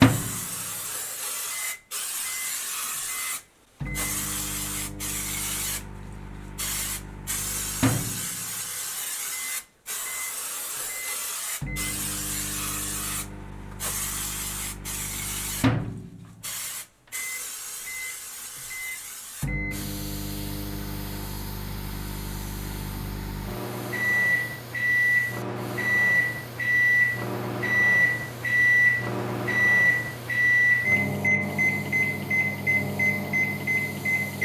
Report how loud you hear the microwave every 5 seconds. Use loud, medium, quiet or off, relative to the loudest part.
medium, quiet, quiet, medium, medium, loud, loud.